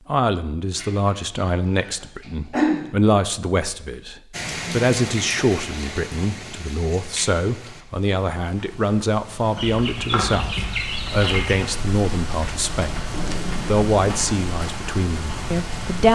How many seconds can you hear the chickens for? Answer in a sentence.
You can hear the chickens for 4 seconds altogether.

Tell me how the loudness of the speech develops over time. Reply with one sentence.
The loudness of the speech stays about the same.